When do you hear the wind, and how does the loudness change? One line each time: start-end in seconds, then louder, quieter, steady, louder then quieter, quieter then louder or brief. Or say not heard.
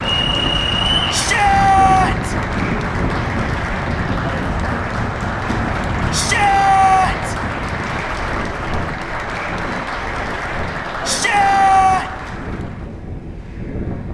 0.0-14.0 quieter.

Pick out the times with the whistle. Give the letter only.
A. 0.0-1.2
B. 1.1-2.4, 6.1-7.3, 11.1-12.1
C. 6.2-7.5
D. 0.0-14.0
A.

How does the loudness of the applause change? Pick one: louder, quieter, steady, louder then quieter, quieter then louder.
steady.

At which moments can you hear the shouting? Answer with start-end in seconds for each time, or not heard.
1.1-2.4, 6.1-7.3, 11.1-12.1.